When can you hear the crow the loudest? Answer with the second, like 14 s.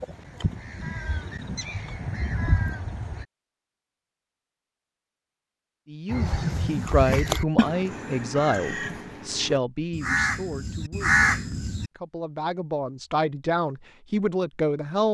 11 s.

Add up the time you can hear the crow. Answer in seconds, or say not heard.
9 s.